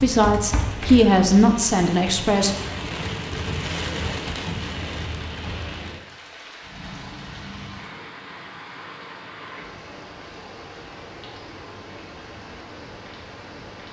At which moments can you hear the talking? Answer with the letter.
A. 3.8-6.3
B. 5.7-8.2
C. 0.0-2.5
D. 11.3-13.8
C.